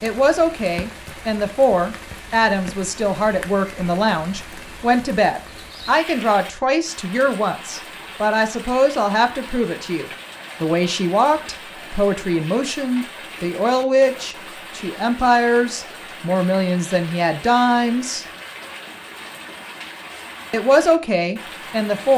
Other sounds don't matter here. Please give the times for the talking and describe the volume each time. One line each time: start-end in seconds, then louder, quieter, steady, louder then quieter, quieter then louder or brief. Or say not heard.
0.0-18.2 steady
20.5-22.1 brief.